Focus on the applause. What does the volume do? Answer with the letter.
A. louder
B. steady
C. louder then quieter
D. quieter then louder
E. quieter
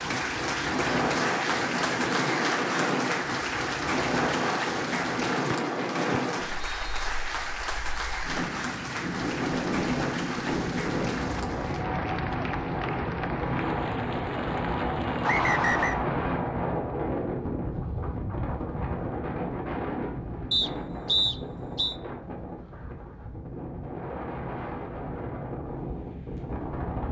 E.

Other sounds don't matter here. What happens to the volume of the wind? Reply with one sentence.
The loudness of the wind goes down.